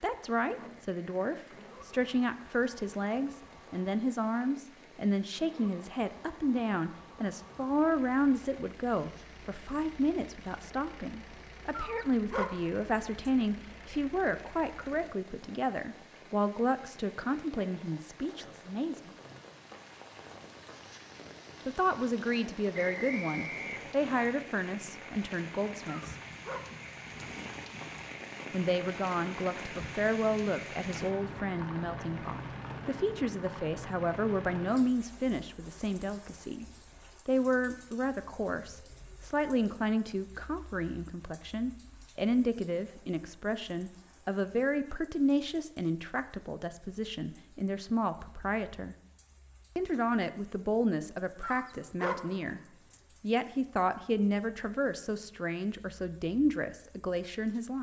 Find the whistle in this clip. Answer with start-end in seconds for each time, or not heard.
22.7-24.2.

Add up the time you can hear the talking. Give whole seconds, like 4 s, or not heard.
51 s.